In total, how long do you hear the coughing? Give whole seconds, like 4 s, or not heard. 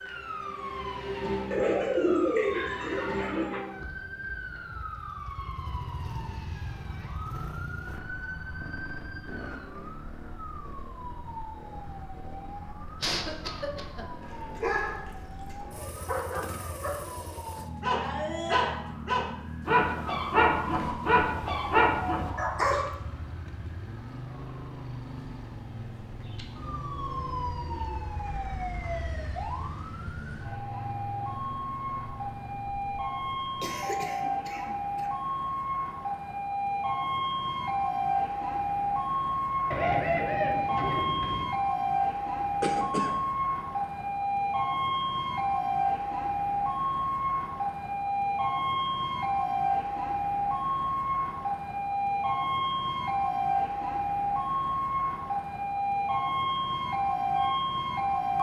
3 s.